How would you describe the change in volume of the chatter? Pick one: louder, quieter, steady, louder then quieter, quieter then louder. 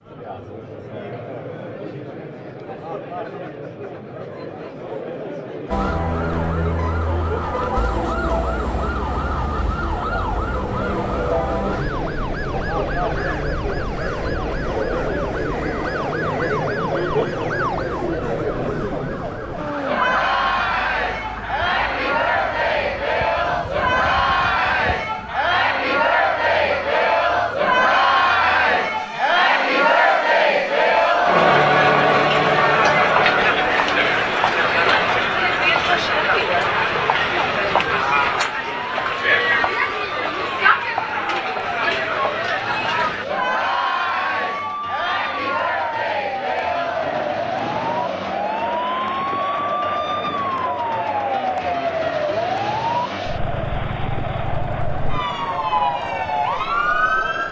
louder then quieter.